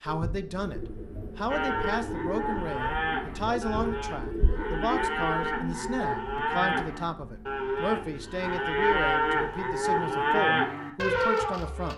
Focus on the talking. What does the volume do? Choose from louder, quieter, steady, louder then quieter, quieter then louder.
steady.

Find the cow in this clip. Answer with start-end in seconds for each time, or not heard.
1.4-11.9.